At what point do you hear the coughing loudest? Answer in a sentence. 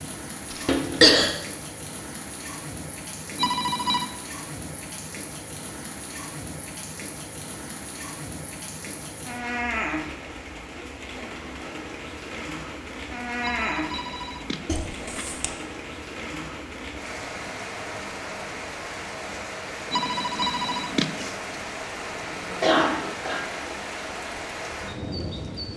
The volume of the coughing peaks at 1 second.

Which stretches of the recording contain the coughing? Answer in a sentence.
You can hear the coughing from 0.5 to 1.3 s, from 14.7 to 15.5 s and from 22.5 to 23.4 s.